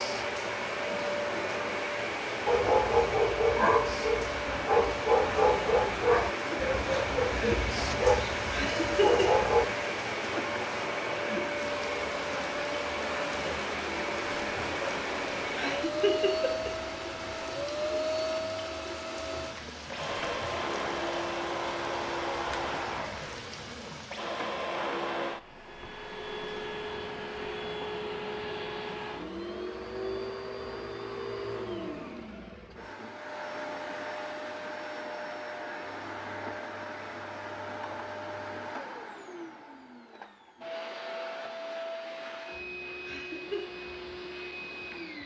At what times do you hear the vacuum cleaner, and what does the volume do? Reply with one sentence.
The vacuum cleaner can be heard from 0.0 to 45.2 s, getting quieter.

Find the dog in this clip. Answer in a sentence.
The dog can be heard from 2.5 to 9.7 s.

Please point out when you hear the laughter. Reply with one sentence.
You can hear the laughter from 8.5 to 9.2 s, from 15.6 to 16.7 s and from 43.0 to 43.6 s.